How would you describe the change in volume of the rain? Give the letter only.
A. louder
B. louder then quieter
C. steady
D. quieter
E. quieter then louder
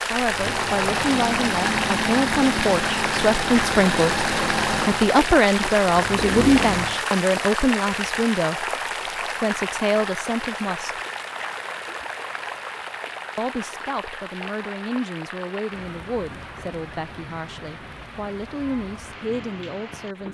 D.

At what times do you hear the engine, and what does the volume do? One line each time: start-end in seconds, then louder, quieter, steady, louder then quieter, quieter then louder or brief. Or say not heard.
0.1-7.0 steady.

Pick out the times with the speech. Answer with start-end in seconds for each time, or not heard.
0.1-11.0, 13.3-20.2.